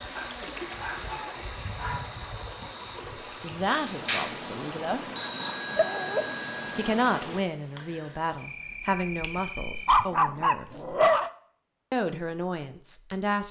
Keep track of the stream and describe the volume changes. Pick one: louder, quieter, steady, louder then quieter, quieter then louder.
steady.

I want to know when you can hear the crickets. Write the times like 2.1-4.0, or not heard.
0.0-10.1.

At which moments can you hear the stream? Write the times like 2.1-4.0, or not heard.
0.0-7.5.